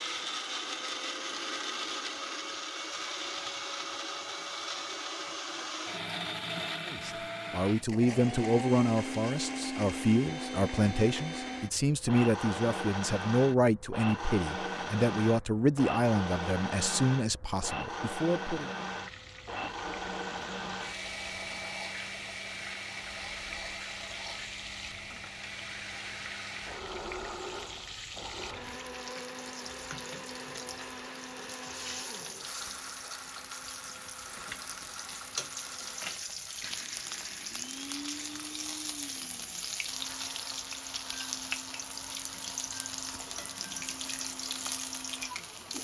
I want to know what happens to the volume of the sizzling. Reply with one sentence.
The volume of the sizzling goes up.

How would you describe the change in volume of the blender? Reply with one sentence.
The loudness of the blender goes down.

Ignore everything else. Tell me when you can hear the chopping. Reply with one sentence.
You can't hear the chopping here.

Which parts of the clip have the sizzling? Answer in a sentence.
The sizzling can be heard from 18.8 to 45.7 s.